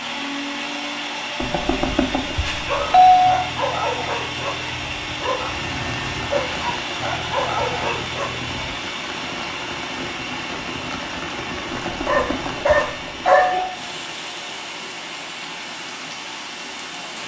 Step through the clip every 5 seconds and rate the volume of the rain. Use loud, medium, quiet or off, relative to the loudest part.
off, loud, loud, loud.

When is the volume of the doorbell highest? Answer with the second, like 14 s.
3 s.